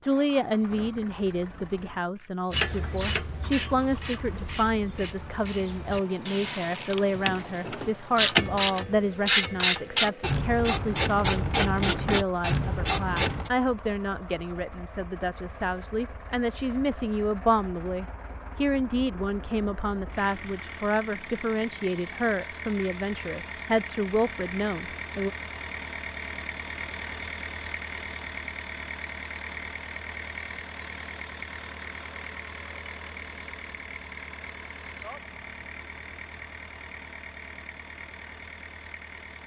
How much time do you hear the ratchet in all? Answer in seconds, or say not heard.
11 s.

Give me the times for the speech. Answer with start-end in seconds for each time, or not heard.
0.0-25.3.